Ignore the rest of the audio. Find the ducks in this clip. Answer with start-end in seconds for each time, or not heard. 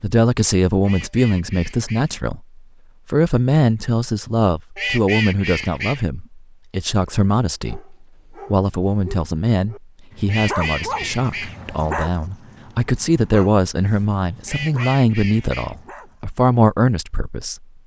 0.8-2.1, 4.8-6.0, 10.2-11.6, 14.4-15.8.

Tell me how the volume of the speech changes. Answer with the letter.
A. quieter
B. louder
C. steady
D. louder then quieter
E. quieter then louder
C.